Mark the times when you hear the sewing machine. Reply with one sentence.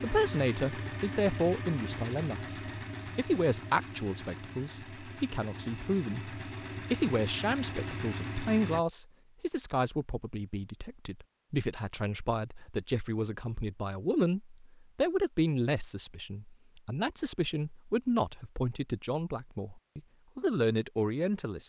The sewing machine can be heard from 0.0 to 8.8 s.